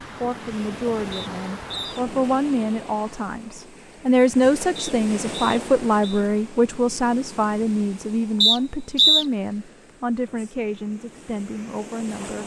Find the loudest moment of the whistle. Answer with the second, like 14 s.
9 s.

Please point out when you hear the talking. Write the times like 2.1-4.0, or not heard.
0.2-12.4.